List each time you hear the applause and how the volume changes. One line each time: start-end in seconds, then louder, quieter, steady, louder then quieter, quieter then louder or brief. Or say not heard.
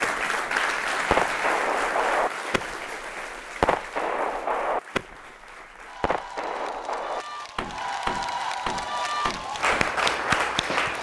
0.0-10.9 quieter then louder.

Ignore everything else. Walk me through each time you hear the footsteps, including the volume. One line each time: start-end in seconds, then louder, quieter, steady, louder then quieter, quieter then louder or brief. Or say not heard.
not heard.